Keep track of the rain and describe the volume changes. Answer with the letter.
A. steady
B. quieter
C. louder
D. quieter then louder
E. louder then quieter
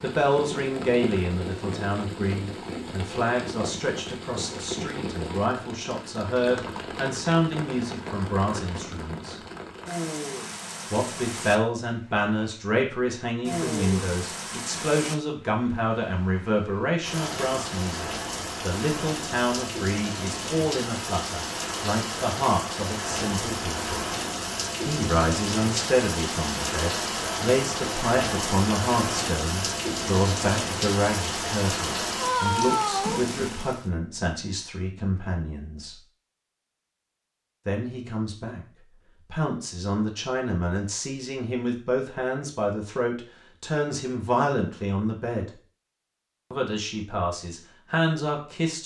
C.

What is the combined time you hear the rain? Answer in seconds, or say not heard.
34 s.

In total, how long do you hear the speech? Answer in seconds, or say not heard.
43 s.